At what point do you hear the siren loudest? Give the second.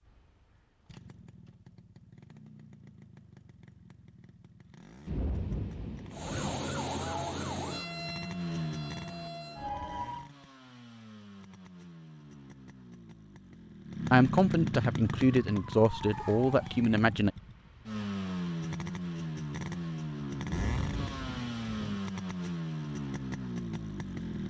7 s.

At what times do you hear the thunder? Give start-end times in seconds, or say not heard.
5.0-6.3, 20.4-22.0.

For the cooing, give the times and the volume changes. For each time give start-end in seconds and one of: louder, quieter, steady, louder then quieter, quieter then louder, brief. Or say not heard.
not heard.